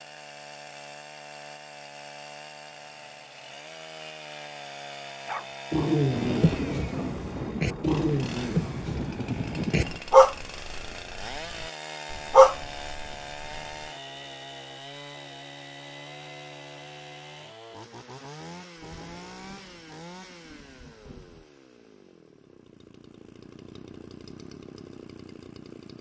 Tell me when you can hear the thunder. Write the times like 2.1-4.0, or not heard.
6.1-10.0, 18.8-21.4.